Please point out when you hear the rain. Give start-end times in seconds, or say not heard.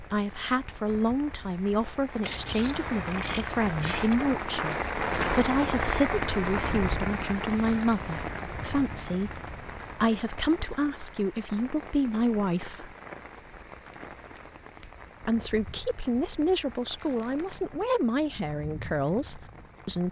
0.0-20.0.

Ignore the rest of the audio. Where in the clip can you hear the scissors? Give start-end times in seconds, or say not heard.
2.2-4.2, 13.9-14.9.